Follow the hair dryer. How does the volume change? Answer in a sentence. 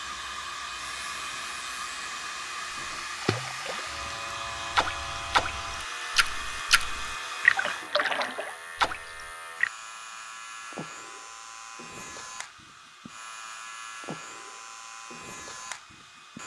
The volume of the hair dryer goes down.